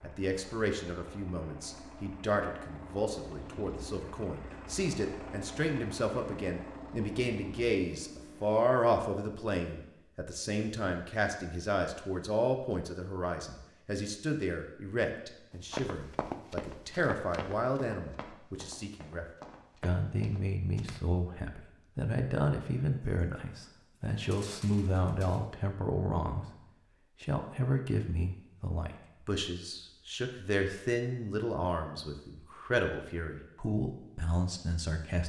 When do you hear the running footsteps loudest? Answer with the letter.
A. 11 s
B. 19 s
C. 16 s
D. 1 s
C.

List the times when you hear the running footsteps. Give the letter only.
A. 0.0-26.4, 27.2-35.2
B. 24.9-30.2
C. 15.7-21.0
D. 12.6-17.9
C.